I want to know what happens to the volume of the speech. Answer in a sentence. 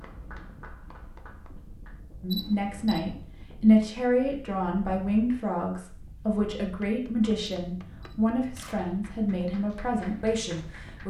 The loudness of the speech goes down.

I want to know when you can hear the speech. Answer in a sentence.
You can hear the speech from 2.2 to 11.0 s.